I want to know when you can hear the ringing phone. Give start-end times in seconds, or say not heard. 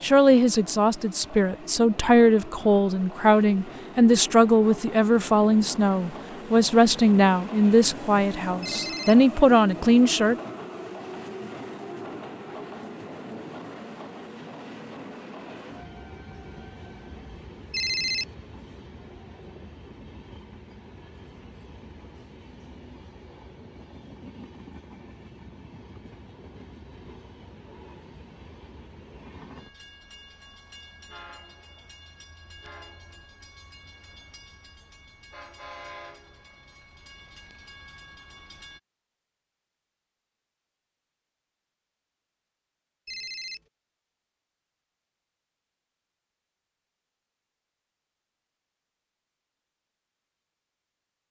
8.6-9.2, 17.7-18.2, 43.0-43.6.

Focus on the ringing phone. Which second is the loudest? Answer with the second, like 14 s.
18 s.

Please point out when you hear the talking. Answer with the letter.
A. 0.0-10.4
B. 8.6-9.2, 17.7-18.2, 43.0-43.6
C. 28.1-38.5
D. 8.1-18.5
A.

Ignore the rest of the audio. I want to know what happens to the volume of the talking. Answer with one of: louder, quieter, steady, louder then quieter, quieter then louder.
steady.